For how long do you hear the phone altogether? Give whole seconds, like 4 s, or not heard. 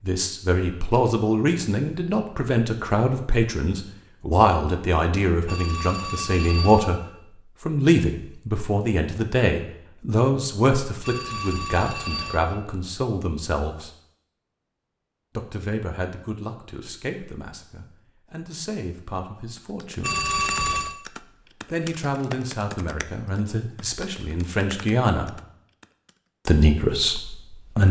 4 s.